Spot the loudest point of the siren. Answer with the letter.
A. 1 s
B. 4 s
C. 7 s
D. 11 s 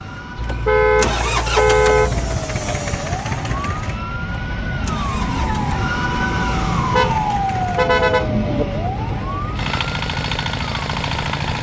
C.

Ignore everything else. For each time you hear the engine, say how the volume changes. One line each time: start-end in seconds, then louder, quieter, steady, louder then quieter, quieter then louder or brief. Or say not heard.
0.0-11.5 quieter then louder.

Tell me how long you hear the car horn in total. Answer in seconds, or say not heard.
4 s.